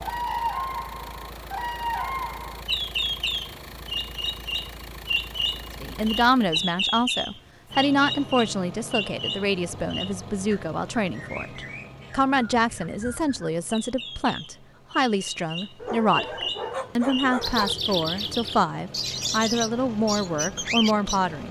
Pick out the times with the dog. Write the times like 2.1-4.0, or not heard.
15.8-17.8.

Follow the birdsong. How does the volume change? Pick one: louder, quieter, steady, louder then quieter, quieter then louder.
quieter then louder.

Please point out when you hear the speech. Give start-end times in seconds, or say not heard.
5.8-21.4.